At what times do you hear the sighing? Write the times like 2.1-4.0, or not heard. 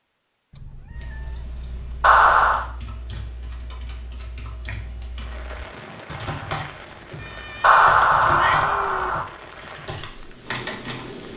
not heard.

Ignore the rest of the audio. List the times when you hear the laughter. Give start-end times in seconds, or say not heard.
2.0-2.6, 7.6-9.2.